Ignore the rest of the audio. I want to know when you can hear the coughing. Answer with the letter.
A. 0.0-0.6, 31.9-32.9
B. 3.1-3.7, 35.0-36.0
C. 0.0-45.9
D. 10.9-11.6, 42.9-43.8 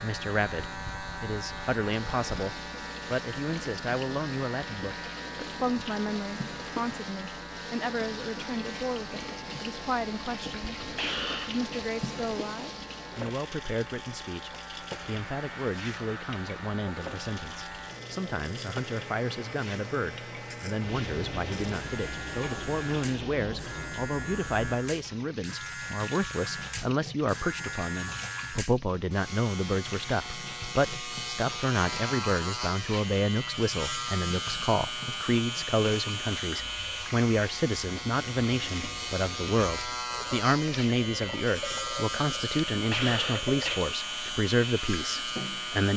D.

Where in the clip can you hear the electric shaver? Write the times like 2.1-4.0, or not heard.
0.0-45.9.